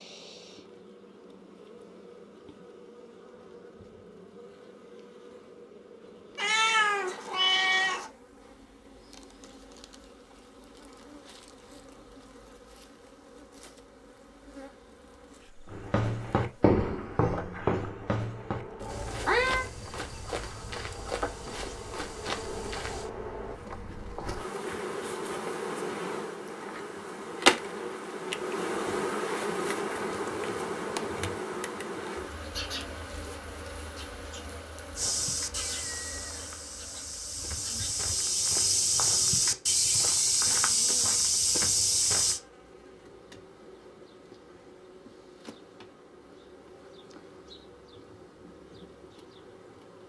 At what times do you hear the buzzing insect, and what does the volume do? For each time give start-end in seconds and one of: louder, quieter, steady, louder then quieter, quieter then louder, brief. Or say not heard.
0.0-50.0 louder then quieter.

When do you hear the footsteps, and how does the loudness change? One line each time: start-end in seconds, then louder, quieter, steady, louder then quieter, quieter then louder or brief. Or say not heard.
15.7-23.1 quieter
35.0-42.4 louder.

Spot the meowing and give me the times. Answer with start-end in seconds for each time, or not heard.
6.3-8.1, 18.8-19.6, 35.5-36.4.